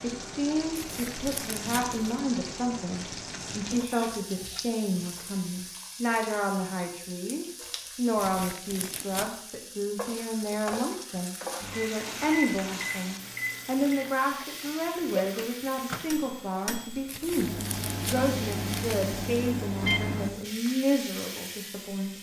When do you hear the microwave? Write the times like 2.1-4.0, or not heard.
11.6-20.3.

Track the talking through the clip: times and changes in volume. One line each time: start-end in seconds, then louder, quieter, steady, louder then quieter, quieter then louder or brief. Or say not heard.
0.0-22.1 steady.